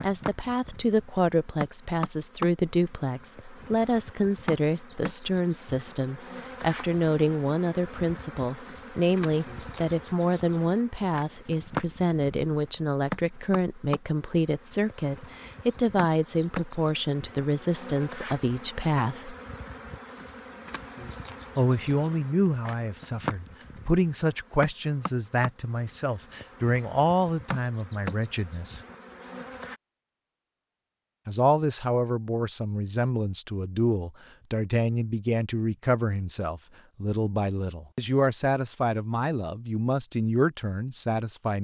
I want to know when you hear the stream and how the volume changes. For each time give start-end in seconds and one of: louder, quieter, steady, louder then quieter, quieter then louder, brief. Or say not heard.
not heard.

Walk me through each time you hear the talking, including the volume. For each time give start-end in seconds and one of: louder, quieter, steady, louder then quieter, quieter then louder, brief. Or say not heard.
0.0-19.4 steady
21.6-28.8 steady
31.2-41.5 steady.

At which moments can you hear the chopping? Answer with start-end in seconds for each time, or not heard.
not heard.